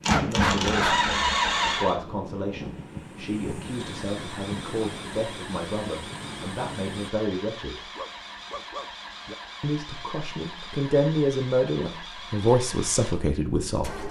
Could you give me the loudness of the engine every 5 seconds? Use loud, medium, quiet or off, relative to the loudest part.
loud, quiet, quiet.